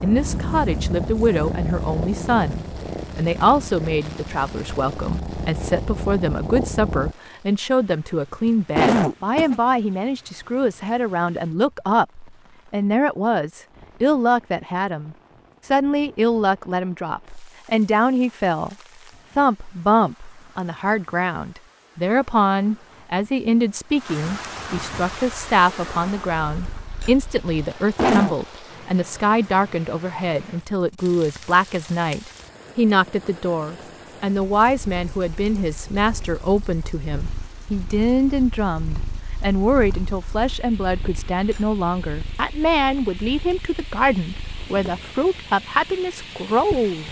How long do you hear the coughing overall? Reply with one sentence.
The coughing can be heard for 2 seconds in total.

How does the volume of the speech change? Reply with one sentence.
The loudness of the speech stays about the same.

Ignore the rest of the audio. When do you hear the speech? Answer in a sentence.
The speech can be heard from 0.0 to 18.8 s and from 19.4 to 47.0 s.